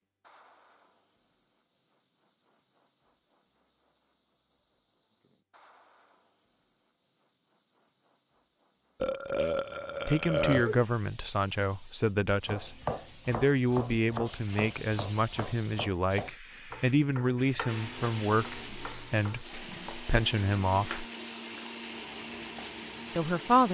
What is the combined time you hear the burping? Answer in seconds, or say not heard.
2 s.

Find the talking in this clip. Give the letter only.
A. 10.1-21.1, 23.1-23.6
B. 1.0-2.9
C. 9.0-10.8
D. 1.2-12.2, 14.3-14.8
A.